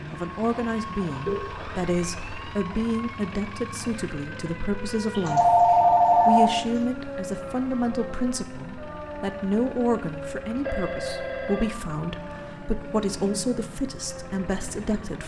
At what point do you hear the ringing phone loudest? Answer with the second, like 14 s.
6 s.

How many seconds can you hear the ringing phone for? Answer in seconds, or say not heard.
4 s.